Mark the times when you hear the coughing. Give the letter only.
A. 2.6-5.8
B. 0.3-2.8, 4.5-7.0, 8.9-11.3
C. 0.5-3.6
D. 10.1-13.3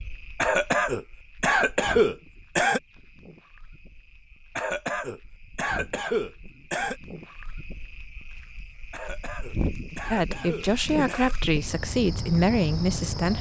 B.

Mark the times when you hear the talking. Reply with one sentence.
The talking can be heard from 10.1 to 13.3 s.